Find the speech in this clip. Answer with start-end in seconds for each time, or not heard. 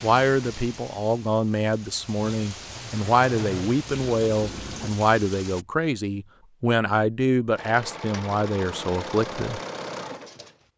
0.0-9.6.